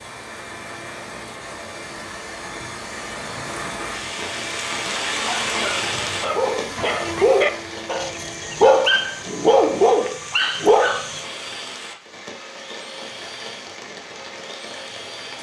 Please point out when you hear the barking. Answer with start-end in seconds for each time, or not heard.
5.2-11.2.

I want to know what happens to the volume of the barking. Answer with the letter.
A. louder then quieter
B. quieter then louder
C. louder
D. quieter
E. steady
C.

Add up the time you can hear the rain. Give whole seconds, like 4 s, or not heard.
15 s.